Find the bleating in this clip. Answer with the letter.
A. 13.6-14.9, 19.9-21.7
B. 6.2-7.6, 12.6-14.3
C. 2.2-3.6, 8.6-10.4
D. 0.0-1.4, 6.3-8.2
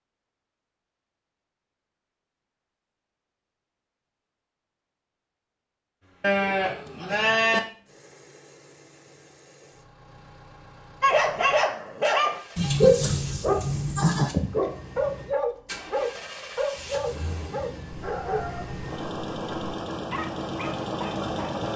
B.